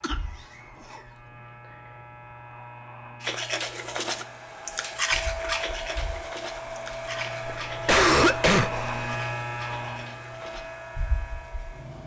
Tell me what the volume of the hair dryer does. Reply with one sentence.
The volume of the hair dryer goes down.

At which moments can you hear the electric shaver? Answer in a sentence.
You can hear the electric shaver from 0.0 to 12.0 s.